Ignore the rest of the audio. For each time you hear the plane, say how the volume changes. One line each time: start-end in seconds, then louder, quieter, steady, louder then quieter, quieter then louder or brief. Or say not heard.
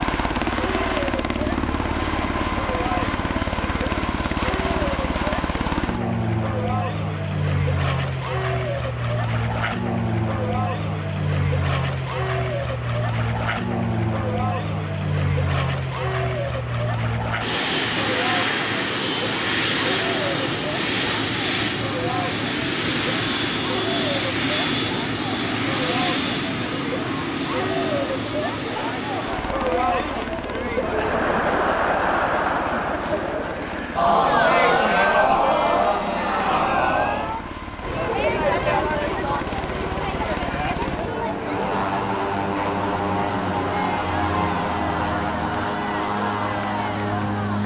0.0-47.6 quieter then louder.